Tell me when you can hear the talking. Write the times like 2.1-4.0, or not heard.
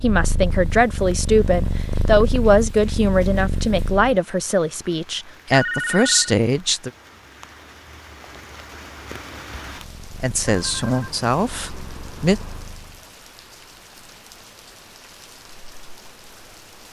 0.0-6.9, 10.1-12.4.